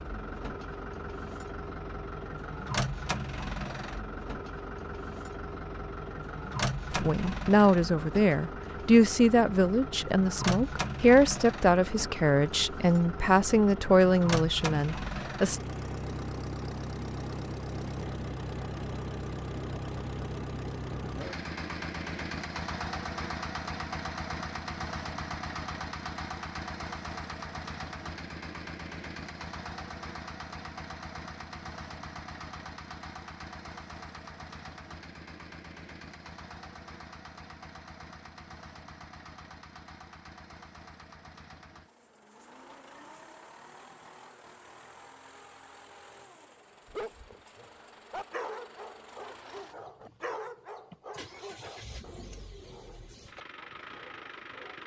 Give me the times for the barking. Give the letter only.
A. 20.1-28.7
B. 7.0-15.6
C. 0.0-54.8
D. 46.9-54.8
D.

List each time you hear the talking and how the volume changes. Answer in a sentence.
You can hear the talking from 7.0 to 15.6 s, at a steady volume.